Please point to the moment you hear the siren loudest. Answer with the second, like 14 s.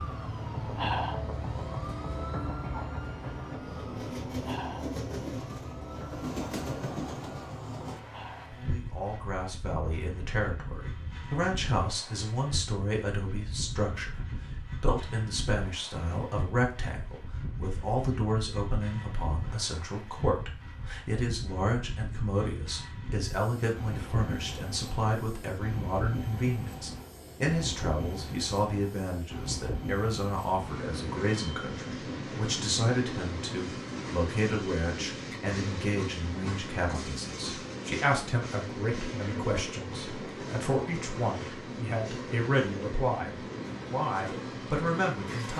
1 s.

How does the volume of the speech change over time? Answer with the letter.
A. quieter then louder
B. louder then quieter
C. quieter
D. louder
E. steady
E.